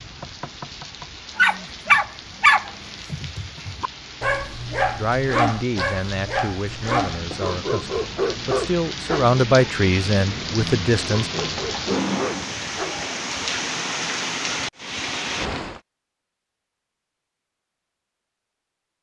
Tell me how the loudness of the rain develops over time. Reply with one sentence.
The loudness of the rain goes up.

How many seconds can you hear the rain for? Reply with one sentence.
The rain can be heard for 16 seconds in total.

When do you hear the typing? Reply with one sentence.
The typing can't be heard in this clip.